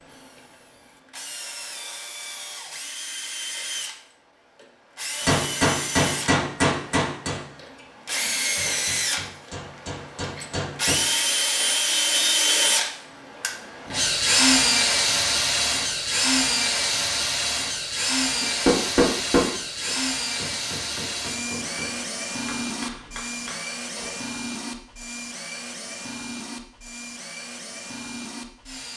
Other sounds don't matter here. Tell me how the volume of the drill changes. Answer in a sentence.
The loudness of the drill goes up, then down.